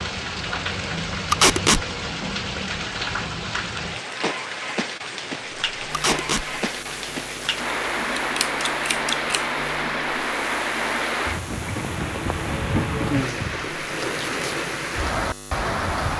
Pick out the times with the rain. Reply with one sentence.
You can hear the rain from 0.0 to 16.1 s.